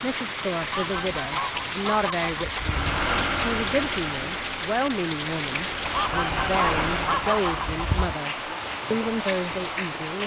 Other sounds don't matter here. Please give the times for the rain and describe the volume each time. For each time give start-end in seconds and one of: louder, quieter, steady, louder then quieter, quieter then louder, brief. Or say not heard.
0.0-10.2 steady.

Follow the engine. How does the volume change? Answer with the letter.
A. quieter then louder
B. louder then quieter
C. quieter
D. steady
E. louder
A.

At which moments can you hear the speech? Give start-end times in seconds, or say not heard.
0.0-10.2.